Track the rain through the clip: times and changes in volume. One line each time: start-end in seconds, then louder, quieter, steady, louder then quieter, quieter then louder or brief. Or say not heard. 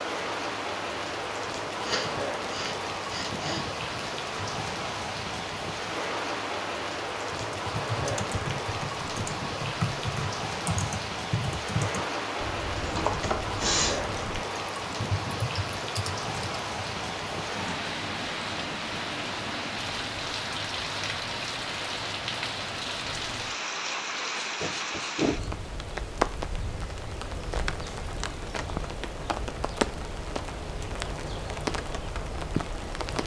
0.0-33.2 steady.